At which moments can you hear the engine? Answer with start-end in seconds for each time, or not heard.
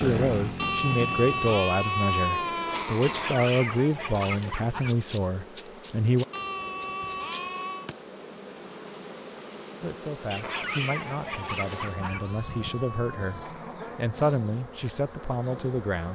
0.0-1.6.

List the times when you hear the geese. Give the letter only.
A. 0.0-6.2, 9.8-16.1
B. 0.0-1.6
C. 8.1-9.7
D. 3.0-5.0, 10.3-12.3
D.